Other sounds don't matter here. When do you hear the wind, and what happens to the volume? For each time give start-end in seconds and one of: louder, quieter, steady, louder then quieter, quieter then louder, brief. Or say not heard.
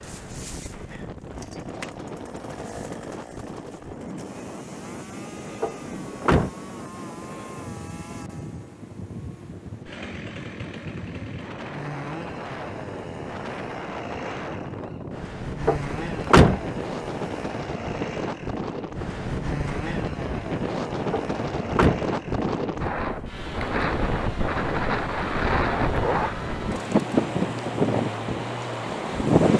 0.0-29.5 louder.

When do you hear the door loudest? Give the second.
16 s.